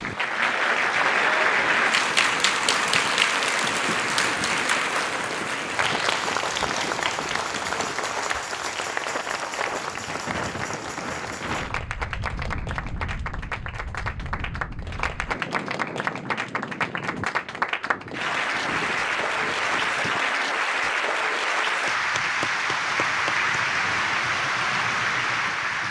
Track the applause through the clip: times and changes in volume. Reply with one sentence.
The applause can be heard from 0.0 to 25.8 s, getting quieter then louder.